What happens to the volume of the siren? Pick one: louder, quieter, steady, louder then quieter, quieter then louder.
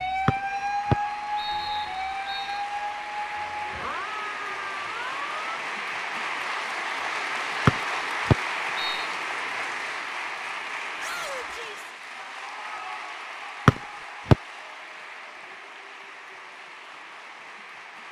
quieter.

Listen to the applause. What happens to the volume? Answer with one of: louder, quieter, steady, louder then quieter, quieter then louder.
louder then quieter.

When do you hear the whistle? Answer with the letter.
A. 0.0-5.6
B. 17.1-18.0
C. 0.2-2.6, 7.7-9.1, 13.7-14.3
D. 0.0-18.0
C.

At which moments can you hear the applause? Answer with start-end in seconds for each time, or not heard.
0.0-18.0.